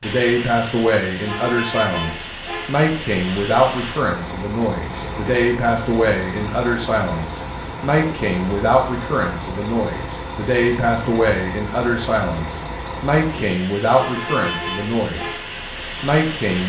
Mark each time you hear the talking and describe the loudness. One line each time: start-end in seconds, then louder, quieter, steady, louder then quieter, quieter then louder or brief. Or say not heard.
0.0-15.3 steady
16.0-16.6 brief.